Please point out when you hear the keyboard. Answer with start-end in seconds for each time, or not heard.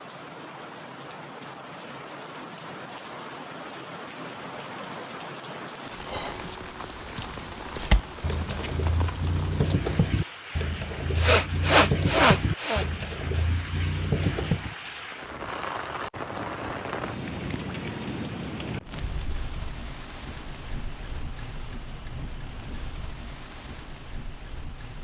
7.7-14.8.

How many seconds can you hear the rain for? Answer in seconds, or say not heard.
25 s.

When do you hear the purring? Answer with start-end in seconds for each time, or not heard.
not heard.